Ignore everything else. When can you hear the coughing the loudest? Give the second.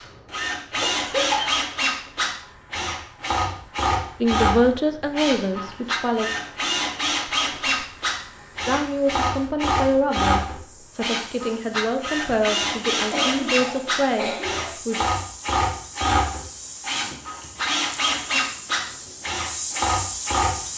1 s.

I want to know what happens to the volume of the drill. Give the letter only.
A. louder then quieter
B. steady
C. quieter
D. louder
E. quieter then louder
B.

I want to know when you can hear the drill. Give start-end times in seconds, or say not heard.
0.0-20.7.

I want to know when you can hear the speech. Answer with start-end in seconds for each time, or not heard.
4.2-6.2, 8.7-15.1.